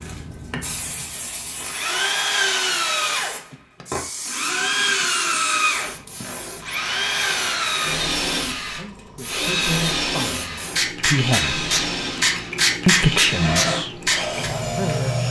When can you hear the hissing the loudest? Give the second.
13 s.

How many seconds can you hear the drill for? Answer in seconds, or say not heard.
15 s.